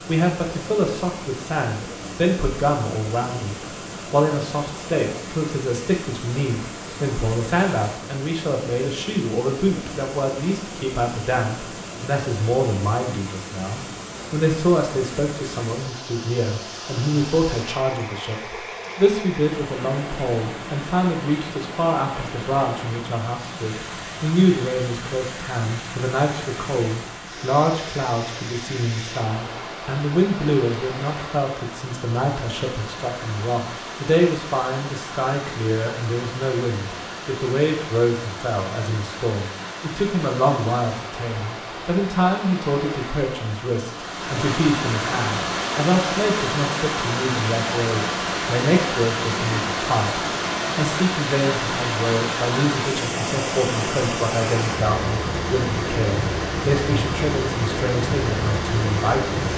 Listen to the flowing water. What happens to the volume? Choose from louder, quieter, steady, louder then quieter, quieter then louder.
louder.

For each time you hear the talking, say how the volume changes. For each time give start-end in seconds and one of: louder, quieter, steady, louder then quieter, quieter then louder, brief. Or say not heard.
0.1-59.5 steady.